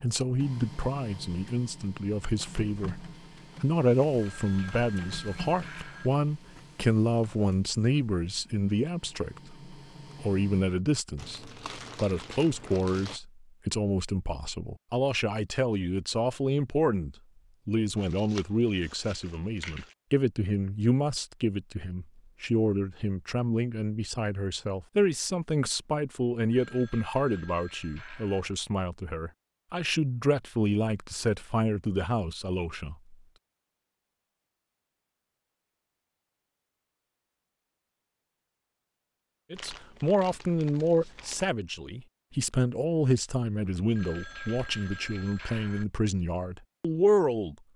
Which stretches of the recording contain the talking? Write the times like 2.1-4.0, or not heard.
0.0-33.1, 39.5-47.5.